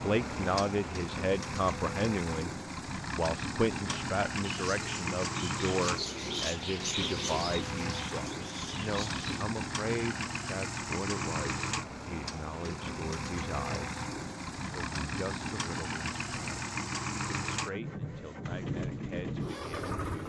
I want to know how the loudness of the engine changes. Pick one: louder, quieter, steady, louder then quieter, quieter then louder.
steady.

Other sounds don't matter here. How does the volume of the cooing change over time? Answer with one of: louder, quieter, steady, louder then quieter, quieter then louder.
louder then quieter.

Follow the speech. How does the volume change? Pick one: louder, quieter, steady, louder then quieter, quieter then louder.
quieter.